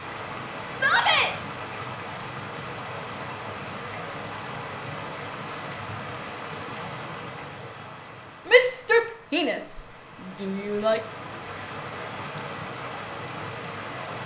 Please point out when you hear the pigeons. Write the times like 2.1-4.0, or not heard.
not heard.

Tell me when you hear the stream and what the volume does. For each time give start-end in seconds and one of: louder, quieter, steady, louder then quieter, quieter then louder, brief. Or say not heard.
0.0-14.2 quieter then louder.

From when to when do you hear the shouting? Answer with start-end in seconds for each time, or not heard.
0.7-1.3, 8.5-9.8, 10.4-11.0.